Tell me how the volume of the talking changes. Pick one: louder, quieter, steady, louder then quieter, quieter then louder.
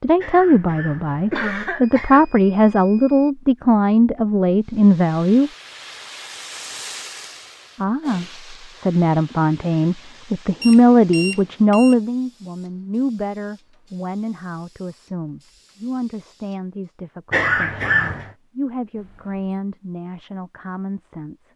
quieter.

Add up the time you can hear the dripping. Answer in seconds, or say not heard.
not heard.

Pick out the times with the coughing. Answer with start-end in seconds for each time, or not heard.
0.2-2.2, 17.3-18.3.